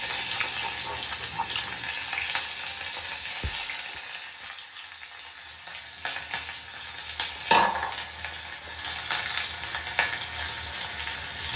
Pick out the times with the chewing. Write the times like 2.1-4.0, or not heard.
0.1-1.9.